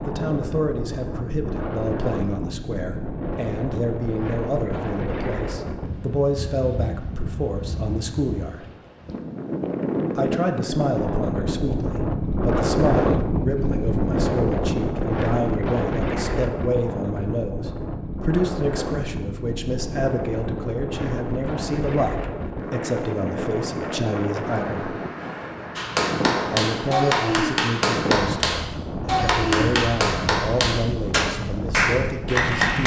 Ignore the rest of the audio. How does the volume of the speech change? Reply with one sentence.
The loudness of the speech stays about the same.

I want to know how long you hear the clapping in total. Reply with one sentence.
You can hear the clapping for 7 seconds altogether.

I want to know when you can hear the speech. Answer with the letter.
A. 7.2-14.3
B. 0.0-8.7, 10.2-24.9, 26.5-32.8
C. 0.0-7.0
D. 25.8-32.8
B.